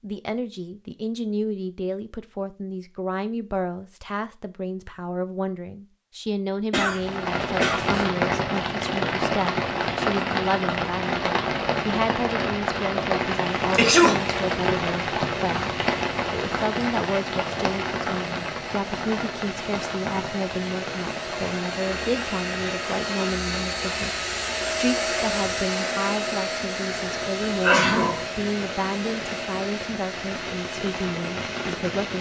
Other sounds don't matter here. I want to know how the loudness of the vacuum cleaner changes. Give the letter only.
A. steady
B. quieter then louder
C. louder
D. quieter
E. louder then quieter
E.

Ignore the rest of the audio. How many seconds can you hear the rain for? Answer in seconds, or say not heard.
25 s.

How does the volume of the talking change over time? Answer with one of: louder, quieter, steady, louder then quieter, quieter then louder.
steady.